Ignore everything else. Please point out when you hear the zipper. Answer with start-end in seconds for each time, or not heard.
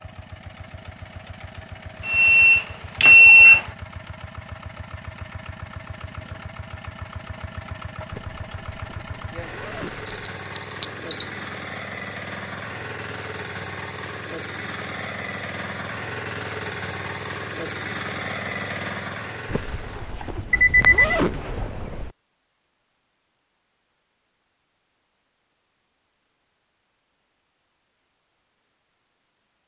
8.1-10.1, 19.4-22.1.